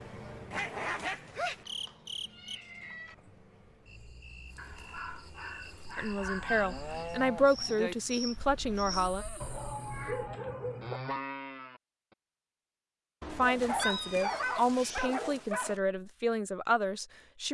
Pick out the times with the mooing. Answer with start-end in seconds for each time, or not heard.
6.4-11.8.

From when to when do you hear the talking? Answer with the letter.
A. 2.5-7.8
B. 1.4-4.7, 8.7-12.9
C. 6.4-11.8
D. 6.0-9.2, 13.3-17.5
D.